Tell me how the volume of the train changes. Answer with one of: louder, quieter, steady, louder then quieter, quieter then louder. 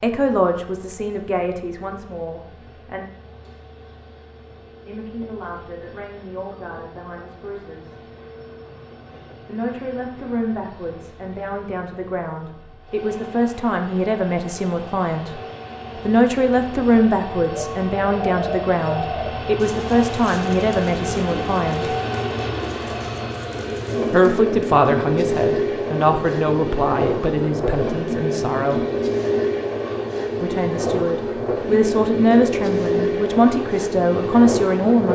louder.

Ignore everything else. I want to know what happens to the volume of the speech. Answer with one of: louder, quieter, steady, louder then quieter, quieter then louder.
louder.